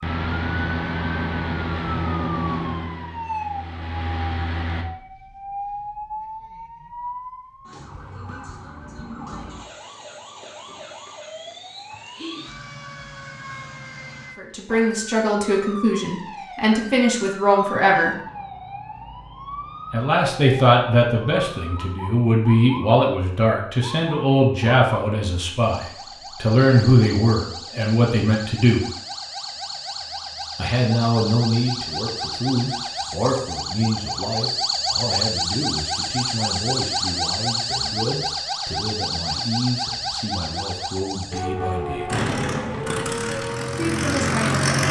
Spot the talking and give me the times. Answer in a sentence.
You can hear the talking from 14.3 to 18.1 s, from 19.9 to 28.9 s, from 30.6 to 42.1 s and from 43.8 to 44.6 s.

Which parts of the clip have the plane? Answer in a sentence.
The plane can be heard from 0.0 to 4.8 s and from 42.0 to 44.8 s.